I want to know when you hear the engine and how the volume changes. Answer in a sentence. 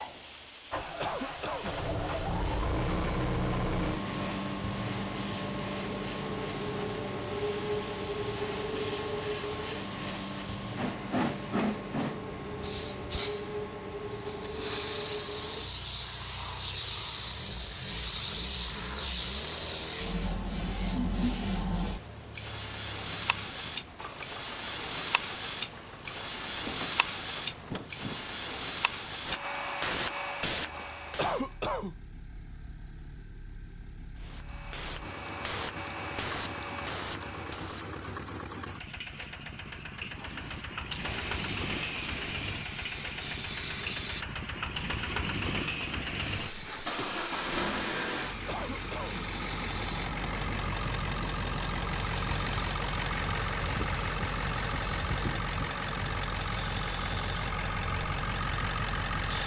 The engine can be heard from 0.0 to 59.4 s, getting quieter then louder.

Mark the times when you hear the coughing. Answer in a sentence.
You can hear the coughing from 1.0 to 1.8 s, from 31.1 to 31.9 s and from 48.5 to 49.2 s.